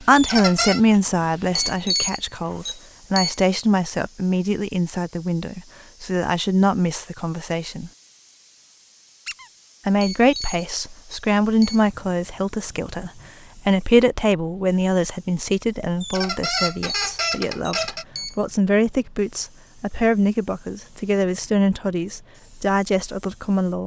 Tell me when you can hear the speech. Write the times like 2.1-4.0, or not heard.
0.0-7.9, 9.8-23.8.